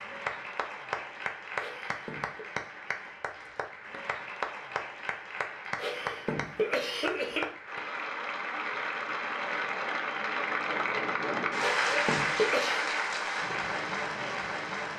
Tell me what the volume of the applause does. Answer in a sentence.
The loudness of the applause goes up.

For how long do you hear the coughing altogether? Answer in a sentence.
The coughing can be heard for 4 seconds in total.